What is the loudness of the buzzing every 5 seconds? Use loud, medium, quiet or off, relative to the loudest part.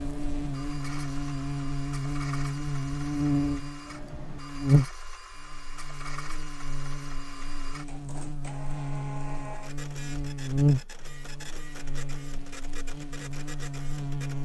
loud, medium, loud.